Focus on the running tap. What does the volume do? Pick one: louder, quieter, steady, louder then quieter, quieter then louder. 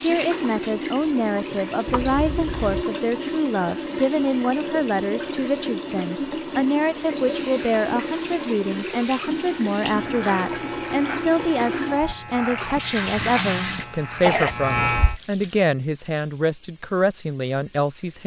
quieter.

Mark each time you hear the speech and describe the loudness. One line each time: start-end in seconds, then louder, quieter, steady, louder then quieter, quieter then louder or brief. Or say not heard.
0.0-18.2 steady.